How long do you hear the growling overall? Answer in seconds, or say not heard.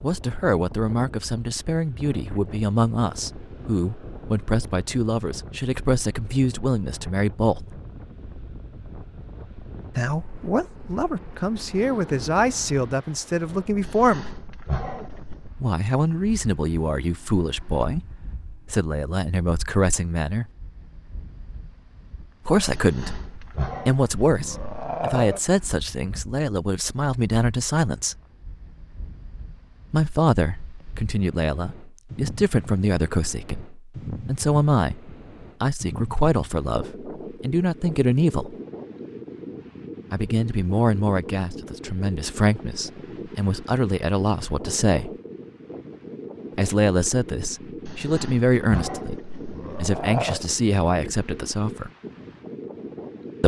7 s.